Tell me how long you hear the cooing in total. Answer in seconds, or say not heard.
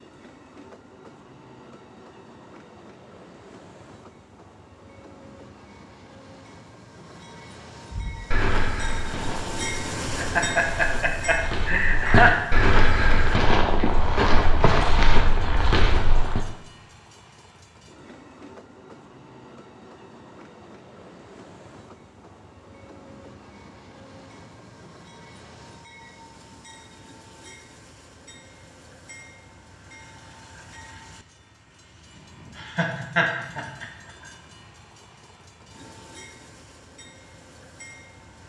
not heard.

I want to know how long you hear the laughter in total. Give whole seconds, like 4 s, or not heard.
4 s.